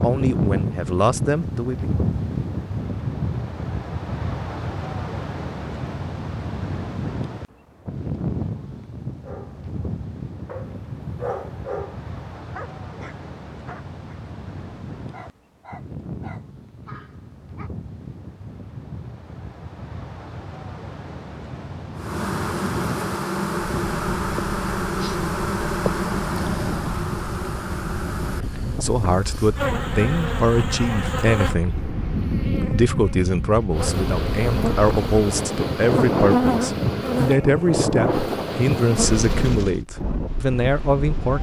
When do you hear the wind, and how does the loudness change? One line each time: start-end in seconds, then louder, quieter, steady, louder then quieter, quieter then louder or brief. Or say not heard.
0.0-41.3 quieter then louder.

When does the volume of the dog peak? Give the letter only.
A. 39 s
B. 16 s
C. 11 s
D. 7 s
C.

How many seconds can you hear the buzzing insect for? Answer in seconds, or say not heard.
18 s.